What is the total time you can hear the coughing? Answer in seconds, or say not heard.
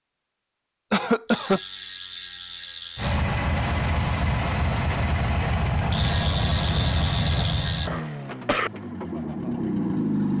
3 s.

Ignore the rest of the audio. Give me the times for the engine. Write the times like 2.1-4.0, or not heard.
3.0-10.3.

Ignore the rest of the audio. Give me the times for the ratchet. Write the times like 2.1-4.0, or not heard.
1.2-3.2, 5.9-7.9.